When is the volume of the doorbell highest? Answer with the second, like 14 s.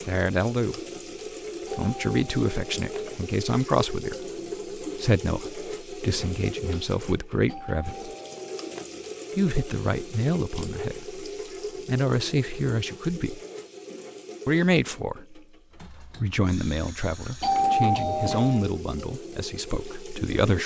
18 s.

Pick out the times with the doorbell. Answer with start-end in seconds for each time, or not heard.
1.6-3.2, 7.5-8.8, 17.4-18.6.